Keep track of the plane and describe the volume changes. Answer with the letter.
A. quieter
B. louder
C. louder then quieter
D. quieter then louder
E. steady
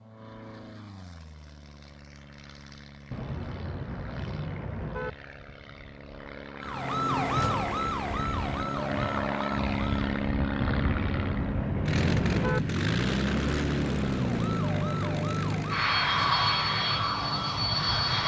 B.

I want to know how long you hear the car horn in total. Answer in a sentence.
You can hear the car horn for 4 seconds altogether.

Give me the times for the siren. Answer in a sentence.
The siren can be heard from 6.6 to 10.2 s and from 14.2 to 18.2 s.